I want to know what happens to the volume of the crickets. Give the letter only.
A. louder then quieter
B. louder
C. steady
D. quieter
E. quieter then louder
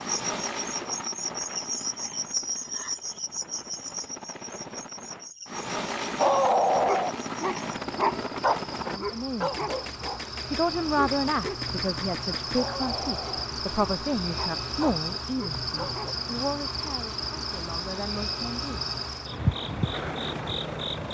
E.